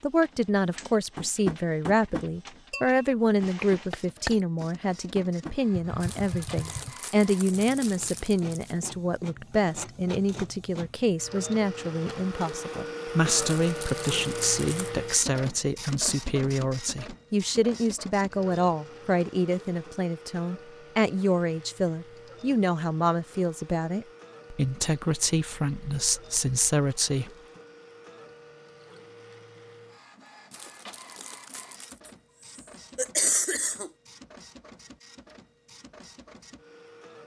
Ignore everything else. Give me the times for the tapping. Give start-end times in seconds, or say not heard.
1.1-7.0.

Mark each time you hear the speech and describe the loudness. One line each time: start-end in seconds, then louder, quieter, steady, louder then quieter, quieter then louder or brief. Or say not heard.
0.0-27.3 steady.